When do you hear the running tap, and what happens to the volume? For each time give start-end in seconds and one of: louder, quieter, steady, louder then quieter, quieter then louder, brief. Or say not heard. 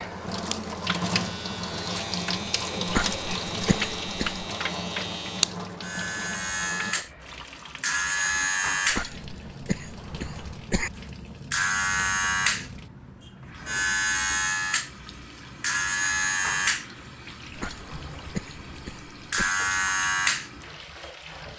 0.0-21.5 quieter.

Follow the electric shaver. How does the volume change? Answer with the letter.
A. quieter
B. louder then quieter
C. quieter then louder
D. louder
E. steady
D.